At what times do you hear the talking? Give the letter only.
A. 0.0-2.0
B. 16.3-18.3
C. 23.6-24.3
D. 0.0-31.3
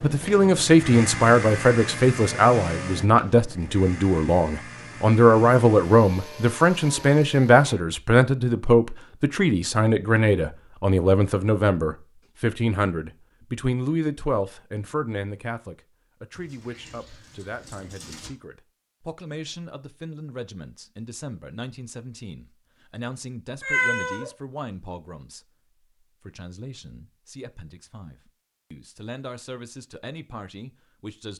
D.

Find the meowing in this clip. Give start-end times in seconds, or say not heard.
23.6-24.3.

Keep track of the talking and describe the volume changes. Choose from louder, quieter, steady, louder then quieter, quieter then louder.
quieter.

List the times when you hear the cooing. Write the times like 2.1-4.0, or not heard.
16.3-18.3.